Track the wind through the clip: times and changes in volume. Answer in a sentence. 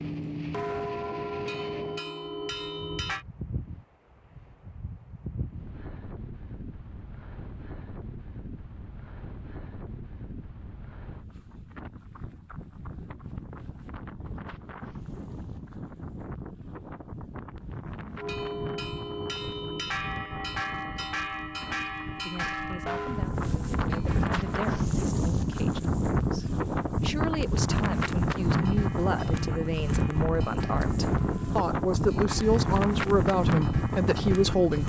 You can hear the wind from 0.0 to 34.8 s, getting louder.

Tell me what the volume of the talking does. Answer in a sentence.
The loudness of the talking goes up.